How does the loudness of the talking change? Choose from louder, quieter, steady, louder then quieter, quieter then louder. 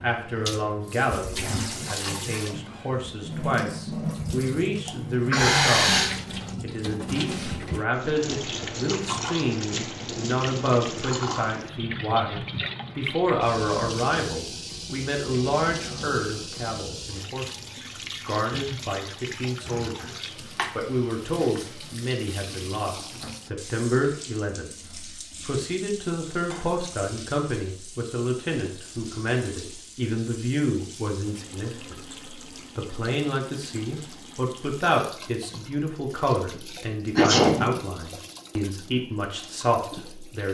steady.